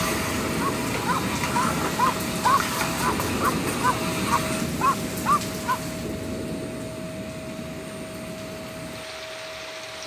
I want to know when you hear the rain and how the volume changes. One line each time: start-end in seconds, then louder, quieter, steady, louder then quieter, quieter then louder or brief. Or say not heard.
0.0-10.0 quieter.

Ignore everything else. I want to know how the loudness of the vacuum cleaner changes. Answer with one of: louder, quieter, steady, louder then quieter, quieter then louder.
quieter.